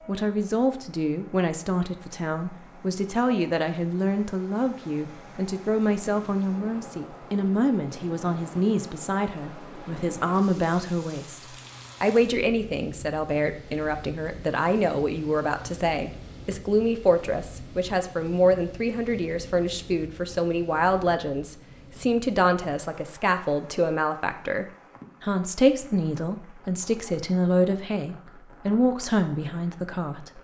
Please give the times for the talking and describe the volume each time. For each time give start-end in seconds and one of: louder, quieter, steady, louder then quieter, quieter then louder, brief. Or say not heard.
0.1-11.4 steady
12.0-30.3 steady.